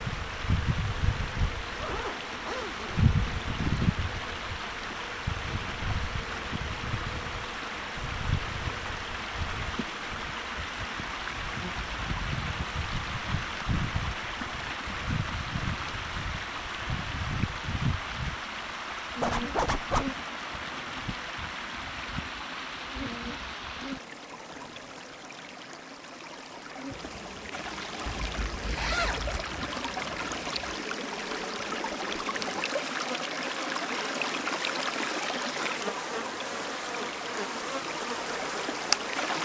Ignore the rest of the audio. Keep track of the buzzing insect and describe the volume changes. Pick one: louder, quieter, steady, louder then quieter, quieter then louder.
quieter then louder.